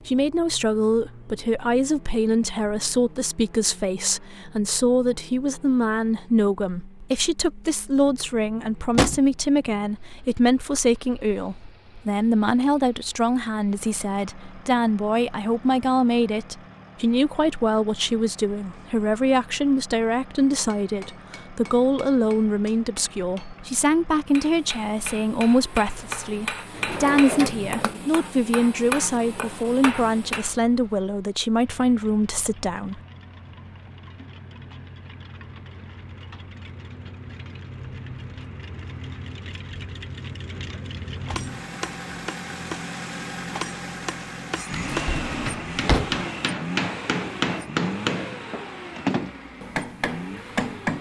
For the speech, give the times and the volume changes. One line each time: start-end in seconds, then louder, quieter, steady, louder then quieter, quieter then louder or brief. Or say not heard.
0.1-33.0 steady.